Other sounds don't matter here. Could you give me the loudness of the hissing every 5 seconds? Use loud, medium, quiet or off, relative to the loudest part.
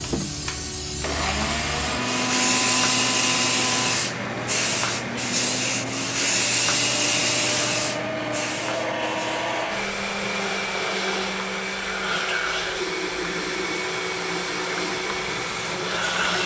loud, loud, quiet, medium.